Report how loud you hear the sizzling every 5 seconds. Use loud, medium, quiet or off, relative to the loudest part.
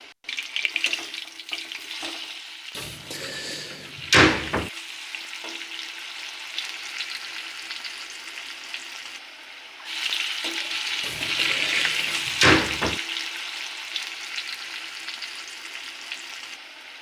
medium, medium, loud, medium.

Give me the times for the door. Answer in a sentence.
The door can be heard from 2.8 to 4.7 s and from 11.1 to 13.0 s.